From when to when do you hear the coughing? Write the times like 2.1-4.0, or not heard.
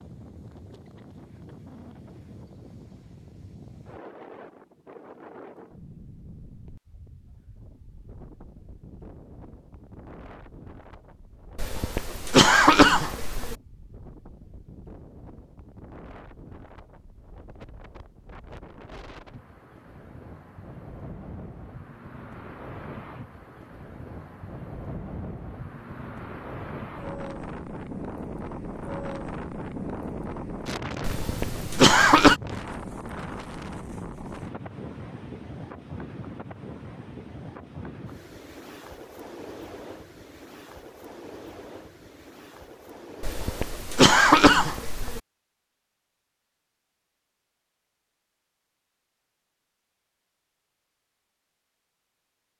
11.6-13.6, 31.0-32.4, 43.2-45.2.